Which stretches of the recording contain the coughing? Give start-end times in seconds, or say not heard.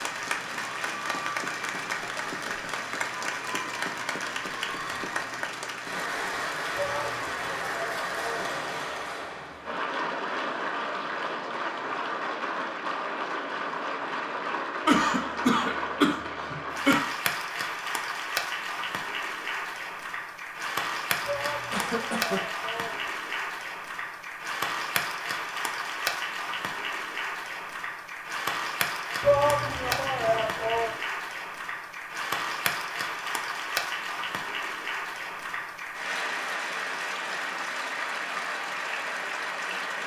14.8-17.0, 21.7-22.4.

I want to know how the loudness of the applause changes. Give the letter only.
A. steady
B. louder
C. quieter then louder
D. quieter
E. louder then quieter
A.